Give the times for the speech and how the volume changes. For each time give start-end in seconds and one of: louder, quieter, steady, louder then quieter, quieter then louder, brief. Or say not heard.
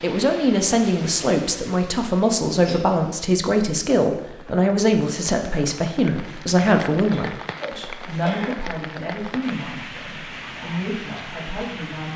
0.0-12.1 quieter.